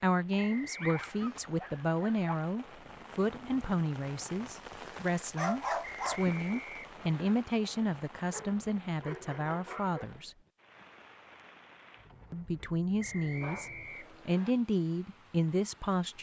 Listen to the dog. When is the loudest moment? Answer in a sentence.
The volume of the dog peaks at 6 seconds.